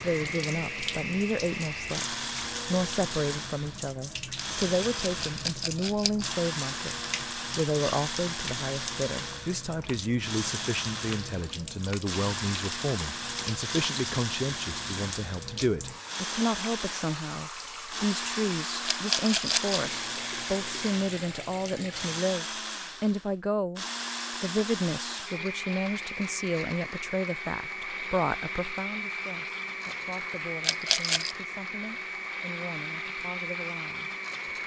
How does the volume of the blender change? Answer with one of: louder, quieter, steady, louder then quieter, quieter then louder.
steady.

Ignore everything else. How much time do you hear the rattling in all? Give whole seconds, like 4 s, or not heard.
4 s.